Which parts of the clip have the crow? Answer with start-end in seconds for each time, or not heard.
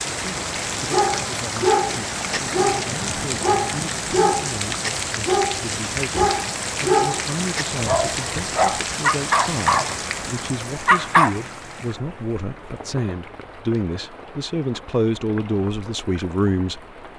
not heard.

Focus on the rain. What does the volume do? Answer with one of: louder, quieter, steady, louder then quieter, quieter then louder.
quieter.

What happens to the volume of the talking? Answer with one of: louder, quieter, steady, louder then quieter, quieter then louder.
louder.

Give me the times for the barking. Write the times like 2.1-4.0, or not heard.
0.8-11.3.